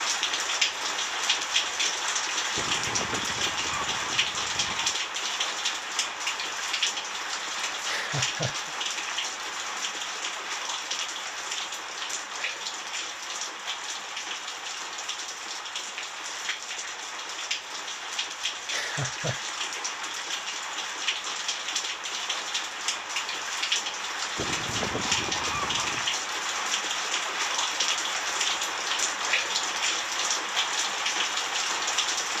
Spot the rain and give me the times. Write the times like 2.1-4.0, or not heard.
0.0-32.3.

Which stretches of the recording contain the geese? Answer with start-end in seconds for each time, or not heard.
2.5-5.0, 24.4-26.1.